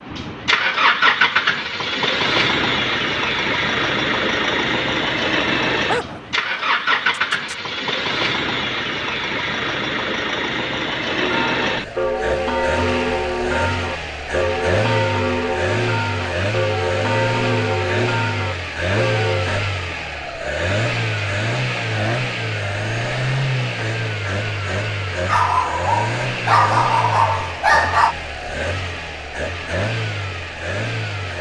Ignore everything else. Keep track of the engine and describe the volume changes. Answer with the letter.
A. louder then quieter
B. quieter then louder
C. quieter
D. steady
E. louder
C.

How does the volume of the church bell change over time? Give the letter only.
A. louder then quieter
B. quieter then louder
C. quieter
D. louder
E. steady
E.